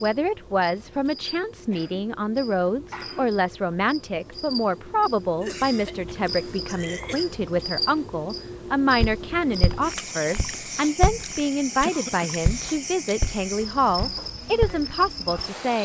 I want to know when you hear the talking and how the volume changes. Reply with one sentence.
The talking can be heard from 0.0 to 15.7 s, at a steady volume.